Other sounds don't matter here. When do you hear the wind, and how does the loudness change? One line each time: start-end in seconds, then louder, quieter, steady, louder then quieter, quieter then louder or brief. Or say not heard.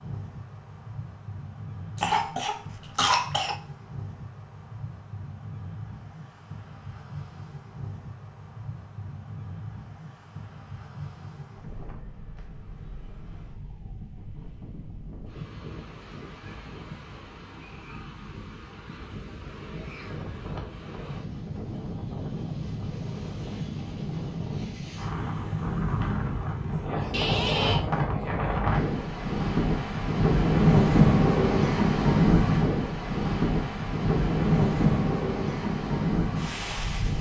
0.0-37.1 louder.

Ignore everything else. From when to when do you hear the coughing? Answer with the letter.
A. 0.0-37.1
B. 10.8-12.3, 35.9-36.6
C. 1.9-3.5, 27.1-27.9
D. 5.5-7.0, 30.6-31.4
C.